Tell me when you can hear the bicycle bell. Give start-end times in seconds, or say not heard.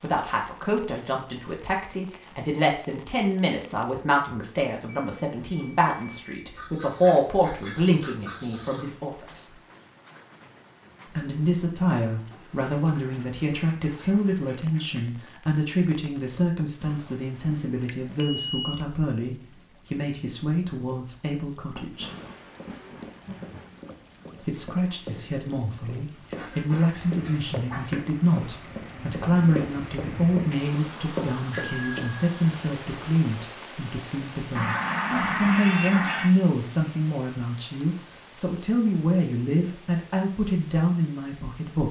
4.8-6.5, 17.9-18.8, 31.5-32.3.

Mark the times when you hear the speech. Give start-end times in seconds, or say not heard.
0.0-9.6, 11.1-22.1, 24.4-41.8.